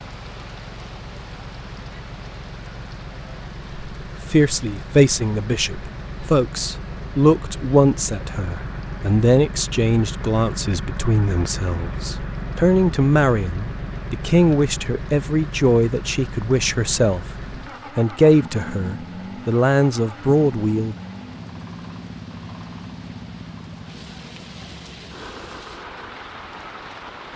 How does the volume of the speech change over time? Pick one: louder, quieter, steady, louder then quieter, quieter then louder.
steady.